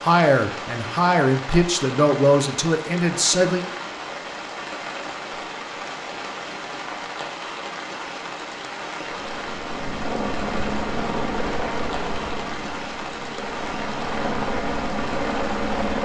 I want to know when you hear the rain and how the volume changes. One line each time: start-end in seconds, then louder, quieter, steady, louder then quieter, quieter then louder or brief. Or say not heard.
0.0-15.9 steady.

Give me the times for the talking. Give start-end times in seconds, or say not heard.
0.0-3.6.